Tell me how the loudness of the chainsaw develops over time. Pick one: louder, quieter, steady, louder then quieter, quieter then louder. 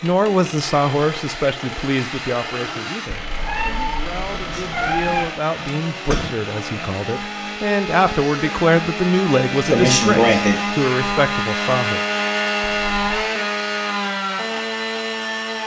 louder.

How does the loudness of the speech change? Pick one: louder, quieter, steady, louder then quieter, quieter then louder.
quieter then louder.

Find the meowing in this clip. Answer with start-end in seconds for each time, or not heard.
3.1-5.3, 12.6-13.3.